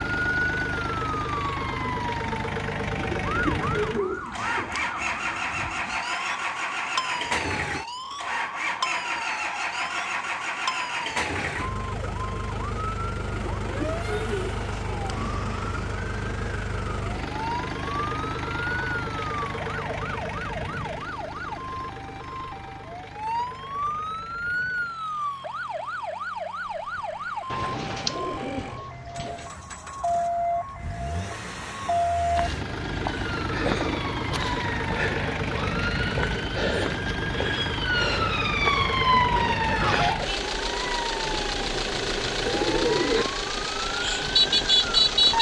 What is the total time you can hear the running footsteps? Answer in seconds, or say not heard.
not heard.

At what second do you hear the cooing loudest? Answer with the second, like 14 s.
43 s.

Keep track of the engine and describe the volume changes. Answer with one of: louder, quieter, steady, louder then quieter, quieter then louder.
quieter then louder.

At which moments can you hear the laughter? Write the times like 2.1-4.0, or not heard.
39.6-40.3.